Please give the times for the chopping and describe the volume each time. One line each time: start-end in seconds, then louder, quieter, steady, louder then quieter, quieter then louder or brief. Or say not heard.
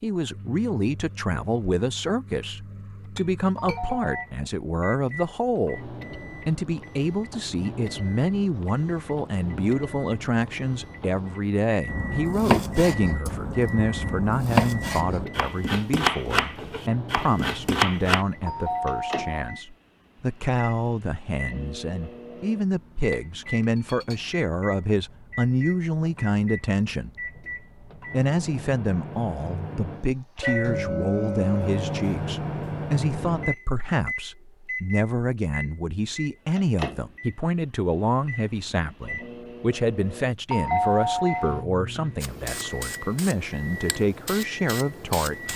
11.8-18.2 quieter then louder.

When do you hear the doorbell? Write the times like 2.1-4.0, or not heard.
3.5-4.2, 18.4-19.6, 40.5-41.6.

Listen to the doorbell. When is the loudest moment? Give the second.
41 s.